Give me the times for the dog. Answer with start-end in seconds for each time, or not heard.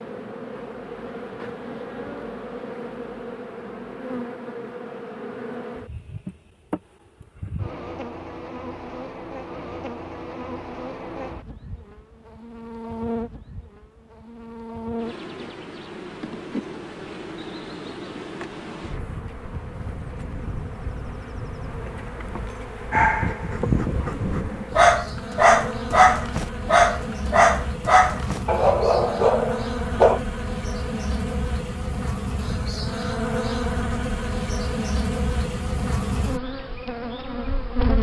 22.9-30.2.